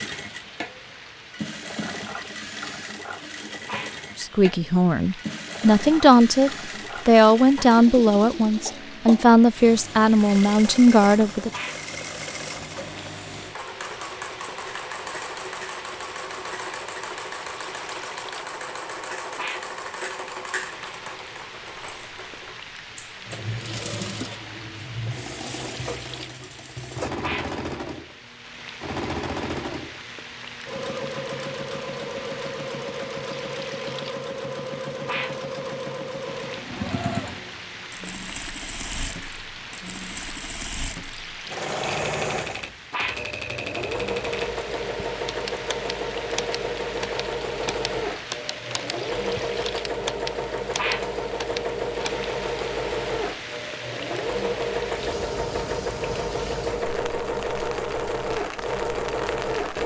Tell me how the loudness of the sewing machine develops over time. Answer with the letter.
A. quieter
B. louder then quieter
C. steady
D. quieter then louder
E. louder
E.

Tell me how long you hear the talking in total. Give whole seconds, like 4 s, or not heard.
7 s.